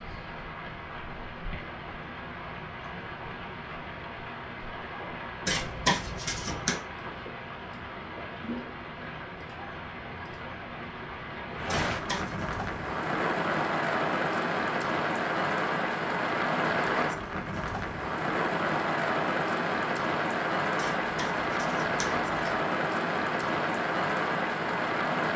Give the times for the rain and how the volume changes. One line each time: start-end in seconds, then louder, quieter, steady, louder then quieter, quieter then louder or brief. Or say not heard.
0.0-25.3 louder.